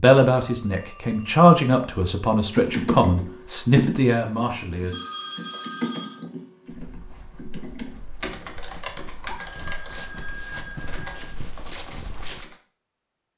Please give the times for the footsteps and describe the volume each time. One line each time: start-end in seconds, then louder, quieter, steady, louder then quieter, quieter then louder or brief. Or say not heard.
6.7-12.4 louder.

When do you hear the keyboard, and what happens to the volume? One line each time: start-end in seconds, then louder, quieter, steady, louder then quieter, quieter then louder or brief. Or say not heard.
2.5-12.6 quieter.